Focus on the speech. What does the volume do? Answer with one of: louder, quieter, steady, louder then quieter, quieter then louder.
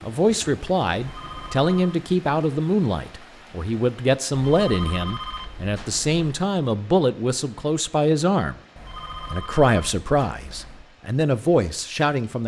steady.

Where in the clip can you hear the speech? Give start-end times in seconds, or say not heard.
0.0-8.6, 9.3-12.4.